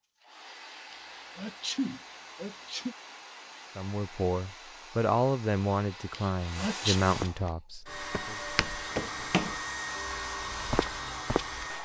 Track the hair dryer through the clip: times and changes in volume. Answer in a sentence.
The hair dryer can be heard from 0.0 to 11.8 s, getting louder.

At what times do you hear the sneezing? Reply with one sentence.
The sneezing can be heard from 0.9 to 3.0 s and from 6.1 to 7.0 s.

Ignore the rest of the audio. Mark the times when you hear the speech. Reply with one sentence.
The speech can be heard from 3.8 to 8.3 s.